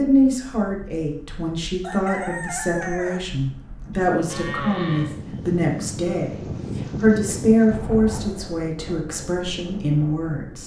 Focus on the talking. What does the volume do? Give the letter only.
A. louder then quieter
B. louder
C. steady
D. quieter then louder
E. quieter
A.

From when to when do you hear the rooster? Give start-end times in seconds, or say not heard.
1.8-3.2.